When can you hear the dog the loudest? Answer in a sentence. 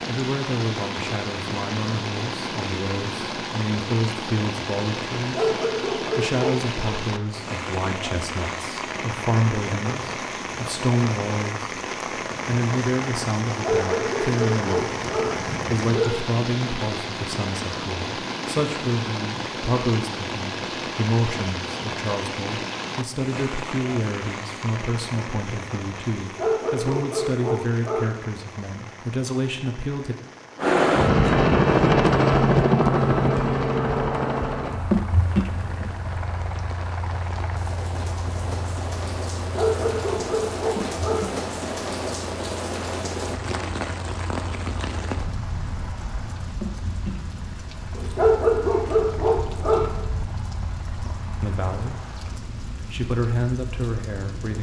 The volume of the dog peaks at 48 seconds.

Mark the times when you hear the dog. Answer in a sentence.
The dog can be heard from 5.2 to 6.8 s, from 13.5 to 16.1 s, from 26.1 to 28.1 s, from 39.4 to 41.3 s and from 48.0 to 50.0 s.